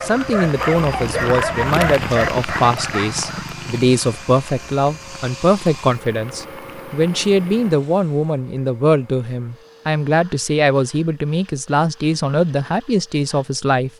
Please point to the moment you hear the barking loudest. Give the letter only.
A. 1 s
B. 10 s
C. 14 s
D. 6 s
A.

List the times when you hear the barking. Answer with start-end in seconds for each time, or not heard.
0.0-3.5.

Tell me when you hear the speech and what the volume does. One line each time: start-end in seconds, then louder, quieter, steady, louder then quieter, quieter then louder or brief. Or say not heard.
0.0-13.9 steady.